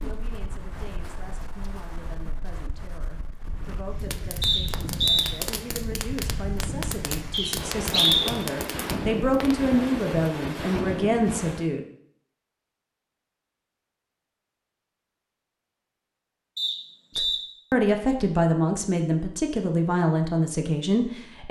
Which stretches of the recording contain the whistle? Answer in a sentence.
You can hear the whistle from 4.4 to 5.2 s, from 7.3 to 8.3 s and from 16.6 to 17.4 s.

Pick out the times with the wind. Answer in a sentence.
The wind can be heard from 0.0 to 11.7 s.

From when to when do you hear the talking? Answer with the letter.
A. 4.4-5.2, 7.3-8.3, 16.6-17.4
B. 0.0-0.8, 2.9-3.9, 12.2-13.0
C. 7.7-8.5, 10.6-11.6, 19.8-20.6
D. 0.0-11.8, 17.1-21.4
D.